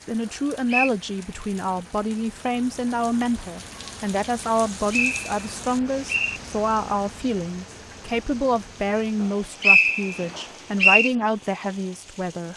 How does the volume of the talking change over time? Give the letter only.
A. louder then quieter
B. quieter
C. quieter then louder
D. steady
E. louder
D.